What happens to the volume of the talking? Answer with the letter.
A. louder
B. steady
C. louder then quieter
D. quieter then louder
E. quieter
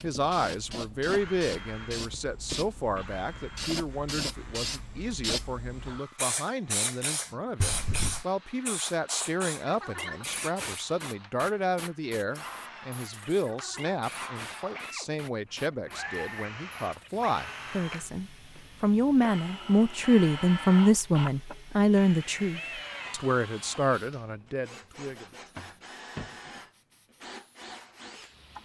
A.